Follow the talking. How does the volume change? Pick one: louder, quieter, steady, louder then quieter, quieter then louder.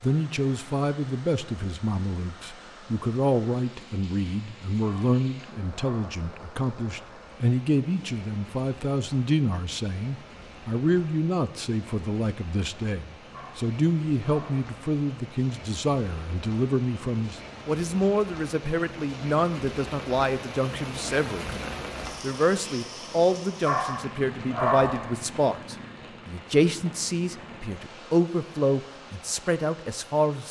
steady.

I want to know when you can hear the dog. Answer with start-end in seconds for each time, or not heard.
4.8-6.2, 13.3-14.8, 23.6-25.1.